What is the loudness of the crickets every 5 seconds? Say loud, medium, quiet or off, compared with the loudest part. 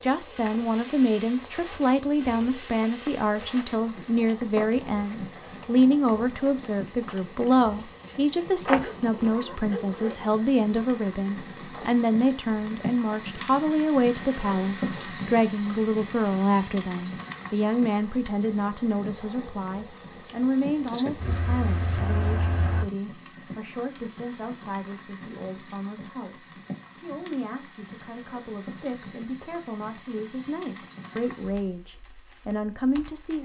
loud, loud, medium, loud, loud, off, off.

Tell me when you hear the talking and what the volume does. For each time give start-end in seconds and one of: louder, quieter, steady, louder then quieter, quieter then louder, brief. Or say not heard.
0.0-33.4 quieter.